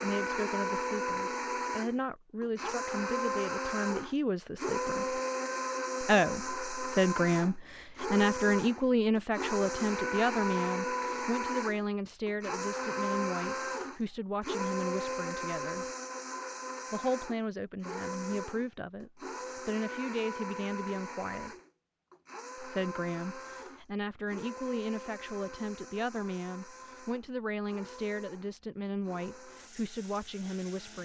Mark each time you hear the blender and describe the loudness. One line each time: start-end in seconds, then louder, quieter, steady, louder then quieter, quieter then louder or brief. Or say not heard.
0.0-31.0 quieter.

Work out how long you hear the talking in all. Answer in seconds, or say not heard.
28 s.